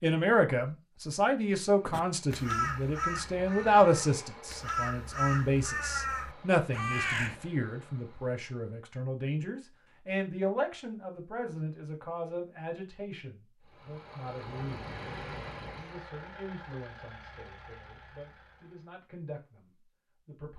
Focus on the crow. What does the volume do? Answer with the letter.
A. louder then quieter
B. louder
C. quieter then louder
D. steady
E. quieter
C.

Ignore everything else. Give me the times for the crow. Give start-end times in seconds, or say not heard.
1.9-7.3.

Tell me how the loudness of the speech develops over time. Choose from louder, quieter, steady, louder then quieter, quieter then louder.
quieter.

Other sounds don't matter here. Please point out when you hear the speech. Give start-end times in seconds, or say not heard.
0.0-14.9, 15.8-20.5.